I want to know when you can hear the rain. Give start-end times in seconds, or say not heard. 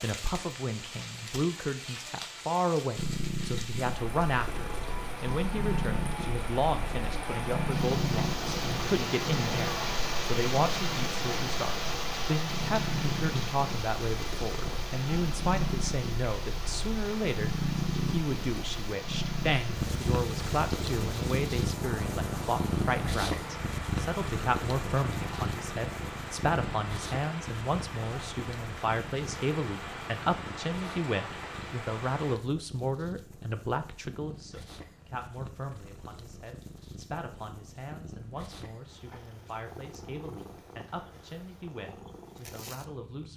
0.0-32.4.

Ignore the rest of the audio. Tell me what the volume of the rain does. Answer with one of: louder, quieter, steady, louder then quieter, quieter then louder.
louder then quieter.